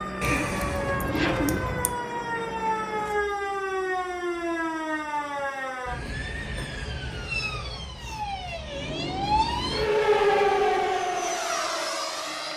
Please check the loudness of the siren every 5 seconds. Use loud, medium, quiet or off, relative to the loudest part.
medium, medium, loud.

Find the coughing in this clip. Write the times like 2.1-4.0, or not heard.
not heard.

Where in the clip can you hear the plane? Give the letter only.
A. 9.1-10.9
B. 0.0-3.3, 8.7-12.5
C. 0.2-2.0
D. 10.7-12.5
B.